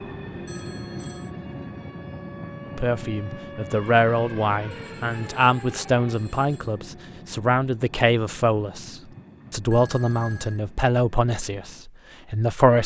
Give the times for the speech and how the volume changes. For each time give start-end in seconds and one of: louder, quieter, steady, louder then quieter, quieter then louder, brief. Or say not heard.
2.6-12.8 steady.